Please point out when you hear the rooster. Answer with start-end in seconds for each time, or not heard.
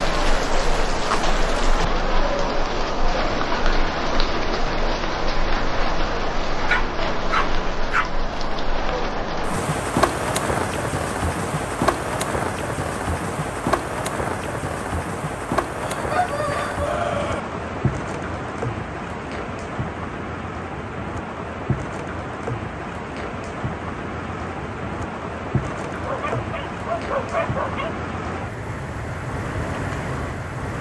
15.8-17.4.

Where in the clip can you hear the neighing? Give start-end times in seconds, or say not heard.
not heard.